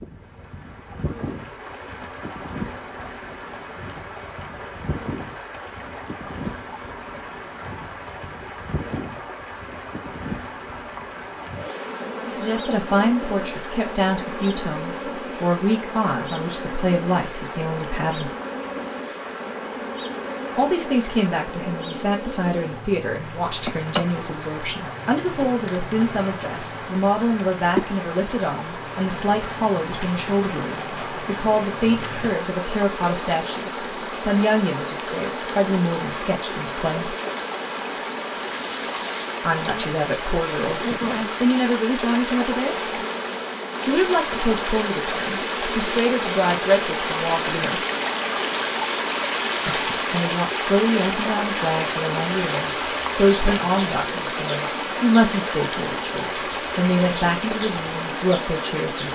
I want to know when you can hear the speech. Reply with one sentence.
You can hear the speech from 12.2 to 18.3 s, from 20.6 to 37.1 s, from 39.4 to 42.8 s, from 43.9 to 47.8 s and from 49.6 to 59.1 s.